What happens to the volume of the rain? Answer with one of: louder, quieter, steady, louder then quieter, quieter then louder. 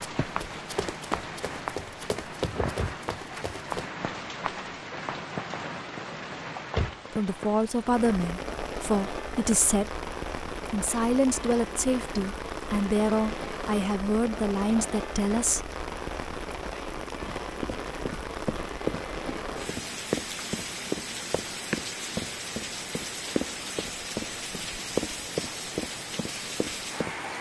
steady.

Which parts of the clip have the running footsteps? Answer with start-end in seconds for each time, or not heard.
0.0-3.9, 17.2-27.1.